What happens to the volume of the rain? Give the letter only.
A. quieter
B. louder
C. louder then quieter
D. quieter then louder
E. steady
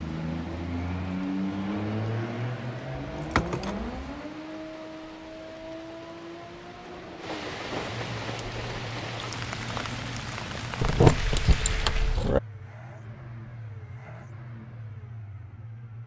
B.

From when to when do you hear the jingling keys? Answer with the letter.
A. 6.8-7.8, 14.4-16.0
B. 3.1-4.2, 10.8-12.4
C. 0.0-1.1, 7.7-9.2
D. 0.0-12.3
B.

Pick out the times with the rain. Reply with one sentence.
The rain can be heard from 0.0 to 12.3 s.